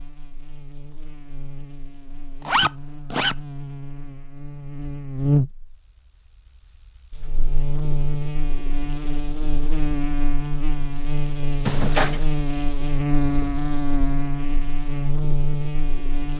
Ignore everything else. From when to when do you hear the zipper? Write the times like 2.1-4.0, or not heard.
2.5-3.4, 11.7-12.2.